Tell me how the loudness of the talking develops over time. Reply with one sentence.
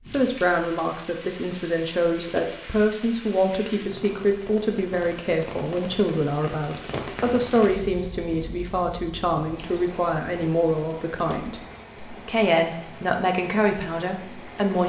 The volume of the talking stays about the same.